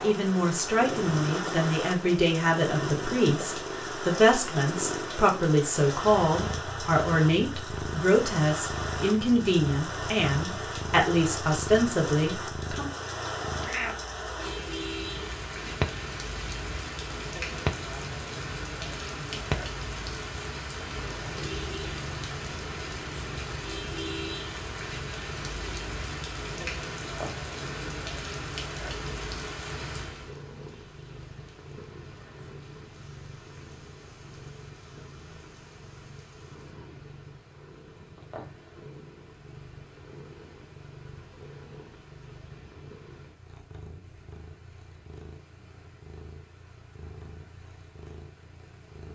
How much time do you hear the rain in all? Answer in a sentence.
The rain can be heard for 49 seconds in total.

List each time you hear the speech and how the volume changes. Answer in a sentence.
You can hear the speech from 0.0 to 12.9 s, at a steady volume.